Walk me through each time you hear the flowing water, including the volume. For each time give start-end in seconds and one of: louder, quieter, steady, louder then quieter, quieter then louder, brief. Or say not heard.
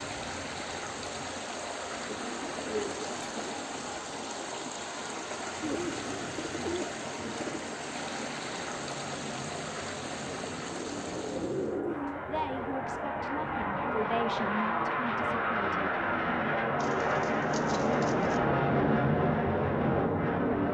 0.0-11.8 steady.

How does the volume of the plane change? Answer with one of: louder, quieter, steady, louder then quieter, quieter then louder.
louder.